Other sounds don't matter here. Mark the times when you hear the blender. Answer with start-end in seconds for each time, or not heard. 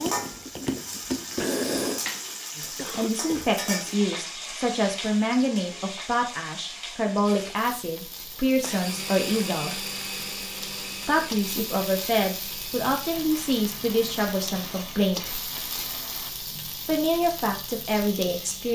0.0-2.0, 7.2-16.4.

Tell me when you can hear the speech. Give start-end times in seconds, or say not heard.
2.5-9.8, 11.1-15.4, 16.9-18.7.